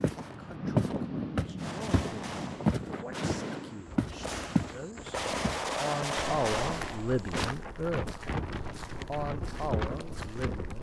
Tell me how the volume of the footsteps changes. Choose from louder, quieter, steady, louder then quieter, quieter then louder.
quieter.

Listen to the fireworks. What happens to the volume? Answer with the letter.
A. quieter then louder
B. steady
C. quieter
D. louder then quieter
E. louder
E.